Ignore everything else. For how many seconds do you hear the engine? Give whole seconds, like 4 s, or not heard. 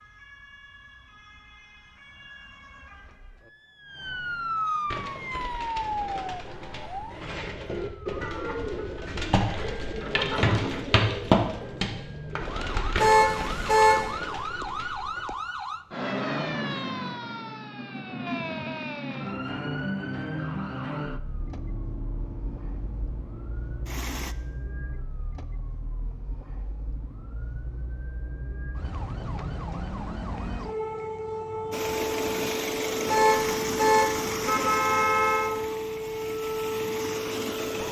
9 s.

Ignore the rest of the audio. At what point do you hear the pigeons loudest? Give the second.
11 s.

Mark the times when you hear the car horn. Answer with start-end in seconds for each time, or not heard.
12.9-14.2, 33.0-35.5.